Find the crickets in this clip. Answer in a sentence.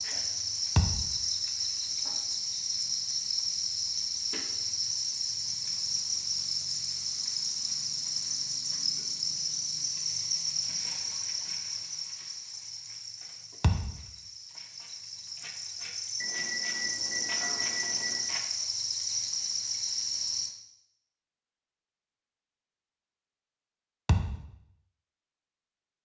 You can hear the crickets from 0.0 to 20.6 s.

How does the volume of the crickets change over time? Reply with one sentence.
The loudness of the crickets goes down, then up.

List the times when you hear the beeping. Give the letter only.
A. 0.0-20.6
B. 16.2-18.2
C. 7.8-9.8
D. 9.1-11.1
B.